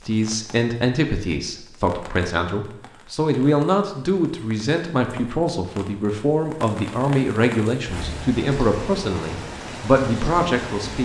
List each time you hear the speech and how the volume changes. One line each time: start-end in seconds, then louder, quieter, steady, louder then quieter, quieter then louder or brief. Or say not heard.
0.1-11.0 steady.